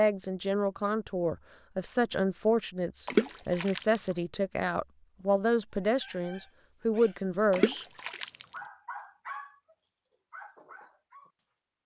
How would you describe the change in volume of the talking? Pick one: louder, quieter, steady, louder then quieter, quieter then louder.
steady.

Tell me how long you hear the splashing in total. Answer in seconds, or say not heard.
2 s.